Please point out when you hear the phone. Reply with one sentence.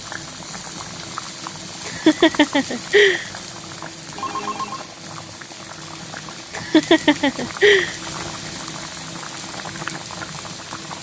You can hear the phone from 4.2 to 4.9 s.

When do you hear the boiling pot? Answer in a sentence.
You can hear the boiling pot from 0.0 to 10.9 s.